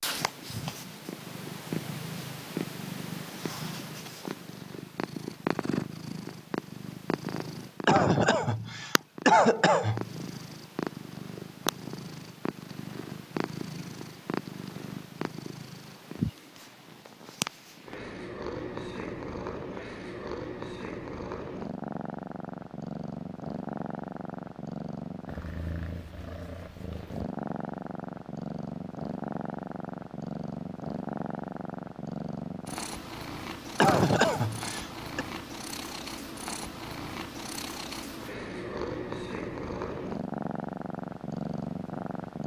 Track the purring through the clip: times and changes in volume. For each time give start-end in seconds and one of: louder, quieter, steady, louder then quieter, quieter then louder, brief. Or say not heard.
0.0-42.4 steady.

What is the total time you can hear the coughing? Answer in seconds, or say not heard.
4 s.